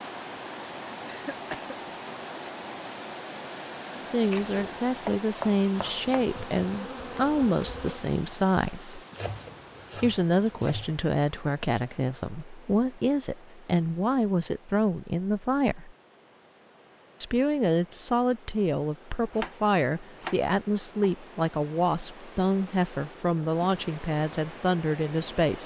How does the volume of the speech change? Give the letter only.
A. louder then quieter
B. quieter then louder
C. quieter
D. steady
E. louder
D.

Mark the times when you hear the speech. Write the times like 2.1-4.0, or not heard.
4.0-9.0, 10.0-15.9, 17.2-25.6.